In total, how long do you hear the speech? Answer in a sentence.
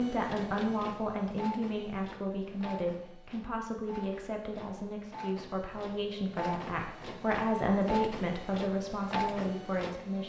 You can hear the speech for 10 seconds altogether.